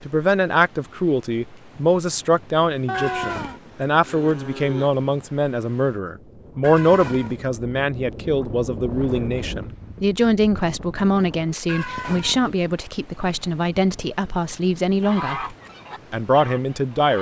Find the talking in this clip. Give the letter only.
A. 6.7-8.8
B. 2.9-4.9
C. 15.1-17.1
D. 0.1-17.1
D.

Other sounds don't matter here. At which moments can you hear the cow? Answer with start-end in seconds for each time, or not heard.
2.9-4.9.